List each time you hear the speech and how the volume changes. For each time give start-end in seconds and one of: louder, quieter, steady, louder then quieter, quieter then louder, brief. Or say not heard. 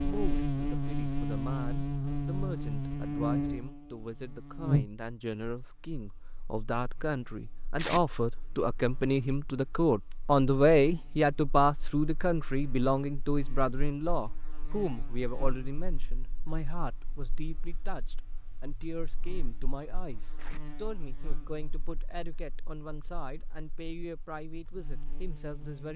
0.0-25.9 louder then quieter.